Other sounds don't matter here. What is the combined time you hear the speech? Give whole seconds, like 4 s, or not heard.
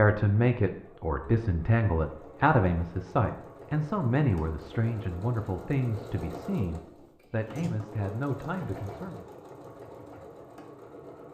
9 s.